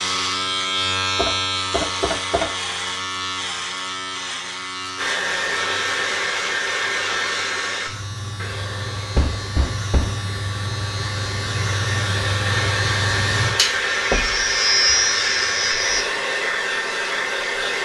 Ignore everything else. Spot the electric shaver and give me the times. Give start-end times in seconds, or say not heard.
0.0-16.1.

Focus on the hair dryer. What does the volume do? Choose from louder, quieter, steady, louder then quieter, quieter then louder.
quieter then louder.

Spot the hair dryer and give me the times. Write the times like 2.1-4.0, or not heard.
5.0-17.8.